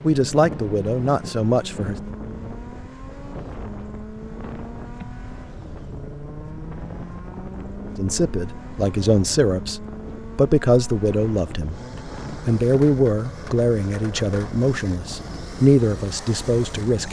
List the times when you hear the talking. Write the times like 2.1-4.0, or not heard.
0.0-1.9, 8.0-17.0.